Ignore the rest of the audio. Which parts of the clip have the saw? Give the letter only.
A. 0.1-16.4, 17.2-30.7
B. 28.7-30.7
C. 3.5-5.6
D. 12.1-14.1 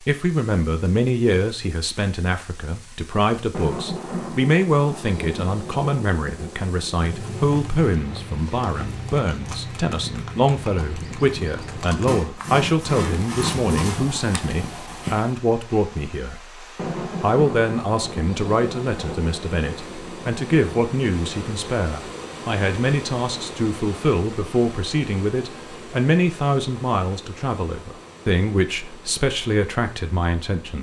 D.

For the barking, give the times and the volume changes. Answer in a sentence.
You can't hear the barking here.